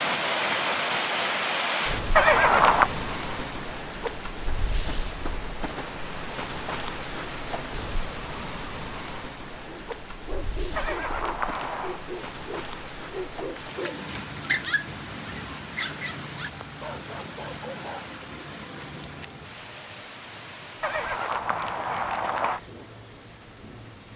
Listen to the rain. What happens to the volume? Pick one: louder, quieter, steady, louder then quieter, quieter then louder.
quieter.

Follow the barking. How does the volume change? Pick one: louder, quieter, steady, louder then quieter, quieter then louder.
louder then quieter.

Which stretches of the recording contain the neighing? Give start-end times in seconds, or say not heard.
2.1-2.9, 10.8-12.0, 20.8-22.6.